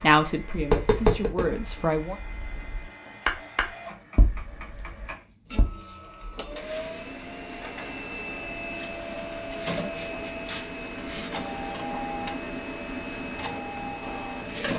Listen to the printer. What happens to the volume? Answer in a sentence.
The loudness of the printer goes up.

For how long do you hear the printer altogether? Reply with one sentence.
The printer can be heard for 15 seconds in total.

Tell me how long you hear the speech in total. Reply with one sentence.
The speech can be heard for 2 seconds in total.